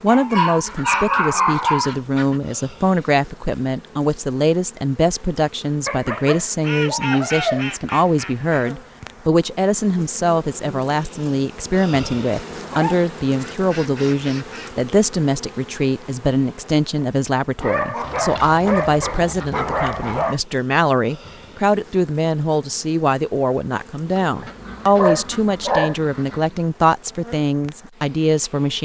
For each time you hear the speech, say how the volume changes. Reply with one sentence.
You can hear the speech from 0.0 to 28.7 s, at a steady volume.